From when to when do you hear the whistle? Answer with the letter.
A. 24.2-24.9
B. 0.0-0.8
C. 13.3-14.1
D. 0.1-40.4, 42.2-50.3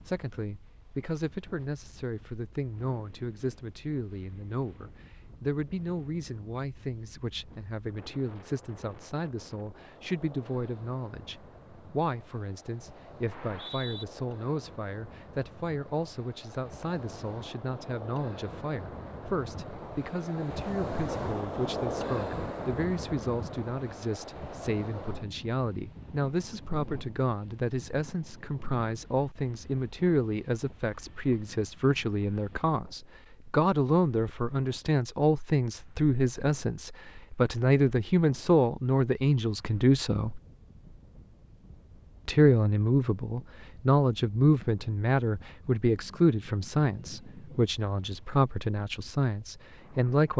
C.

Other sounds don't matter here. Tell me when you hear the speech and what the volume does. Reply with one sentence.
The speech can be heard from 0.1 to 40.4 s, getting louder; and from 42.2 to 50.3 s, getting quieter.